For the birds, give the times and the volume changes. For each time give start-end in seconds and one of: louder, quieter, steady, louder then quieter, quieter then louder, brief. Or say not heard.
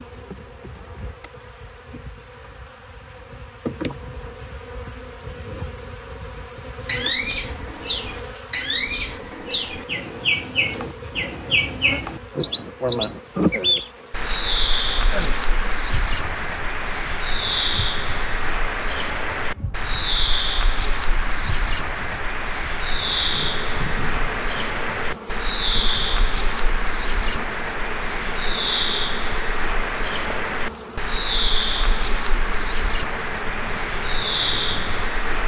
6.8-35.4 steady.